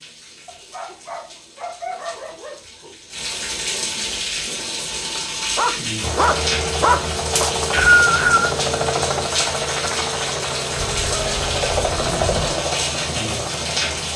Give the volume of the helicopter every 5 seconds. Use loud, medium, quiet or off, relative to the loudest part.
off, loud, loud.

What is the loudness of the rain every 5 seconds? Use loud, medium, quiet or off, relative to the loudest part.
medium, loud, loud.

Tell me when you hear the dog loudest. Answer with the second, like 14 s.
7 s.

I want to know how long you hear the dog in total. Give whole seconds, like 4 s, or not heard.
7 s.